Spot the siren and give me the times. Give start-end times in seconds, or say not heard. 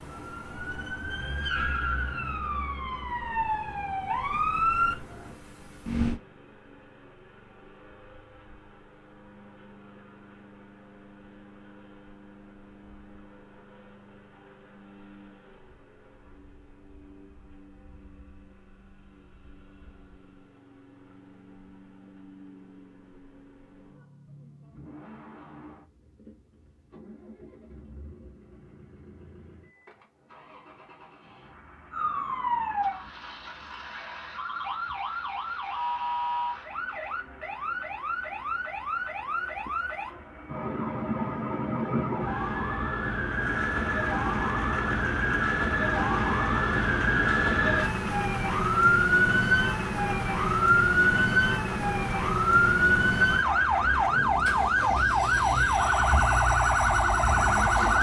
0.0-6.2, 31.9-57.9.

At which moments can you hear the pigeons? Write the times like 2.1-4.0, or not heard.
not heard.